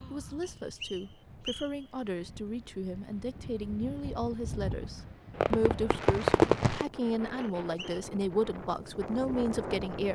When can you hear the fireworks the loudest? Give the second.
6 s.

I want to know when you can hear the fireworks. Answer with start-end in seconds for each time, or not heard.
4.8-6.9.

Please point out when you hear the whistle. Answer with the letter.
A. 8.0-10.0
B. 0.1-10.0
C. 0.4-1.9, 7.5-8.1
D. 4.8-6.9
C.